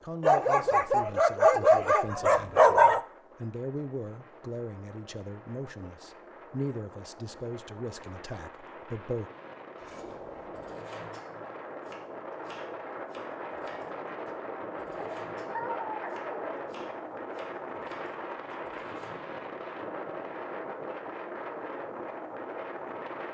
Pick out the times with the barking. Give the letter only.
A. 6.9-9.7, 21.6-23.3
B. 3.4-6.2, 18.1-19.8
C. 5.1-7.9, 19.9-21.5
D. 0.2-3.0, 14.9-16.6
D.